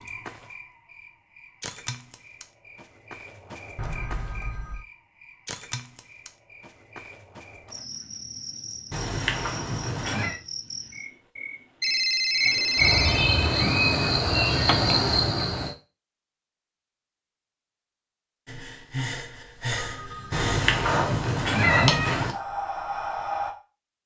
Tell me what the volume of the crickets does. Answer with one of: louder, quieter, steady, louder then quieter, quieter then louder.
louder.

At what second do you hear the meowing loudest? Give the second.
22 s.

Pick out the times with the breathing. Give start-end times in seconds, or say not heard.
18.4-23.6.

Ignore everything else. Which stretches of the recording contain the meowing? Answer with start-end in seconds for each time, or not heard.
8.9-10.4, 20.3-22.4.